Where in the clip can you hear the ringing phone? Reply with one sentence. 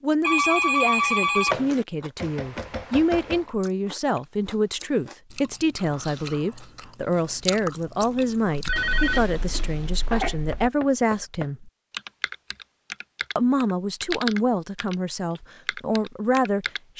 You can hear the ringing phone from 0.2 to 1.9 s and from 8.7 to 10.7 s.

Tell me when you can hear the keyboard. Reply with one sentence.
You can hear the keyboard from 11.9 to 16.8 s.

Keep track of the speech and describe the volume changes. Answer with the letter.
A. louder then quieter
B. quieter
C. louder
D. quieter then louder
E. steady
E.